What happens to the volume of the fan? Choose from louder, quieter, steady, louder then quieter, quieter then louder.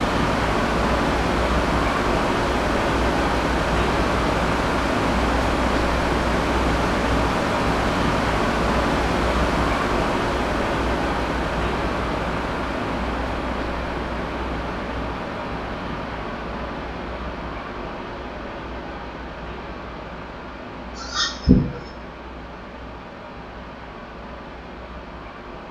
quieter.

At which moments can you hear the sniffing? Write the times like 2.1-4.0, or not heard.
20.9-21.9.